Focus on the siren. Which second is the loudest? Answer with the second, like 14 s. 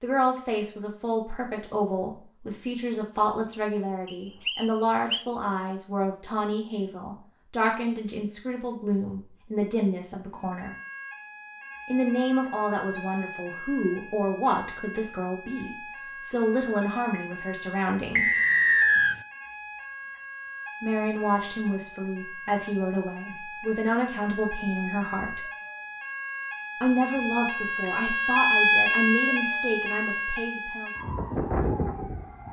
29 s.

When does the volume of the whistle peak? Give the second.
19 s.